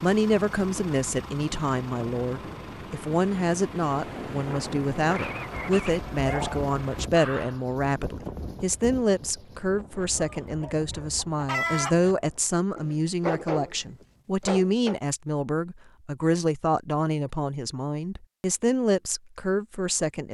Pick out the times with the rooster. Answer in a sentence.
You can hear the rooster from 10.2 to 12.1 s.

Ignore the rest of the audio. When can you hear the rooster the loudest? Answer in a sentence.
The loudest moment of the rooster is at 12 seconds.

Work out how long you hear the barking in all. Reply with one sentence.
The barking can be heard for 4 seconds in total.